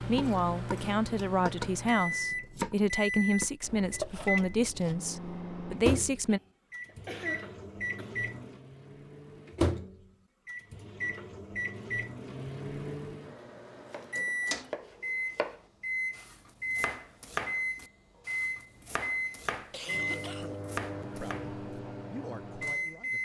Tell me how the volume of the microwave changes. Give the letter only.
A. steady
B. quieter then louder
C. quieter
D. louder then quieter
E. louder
A.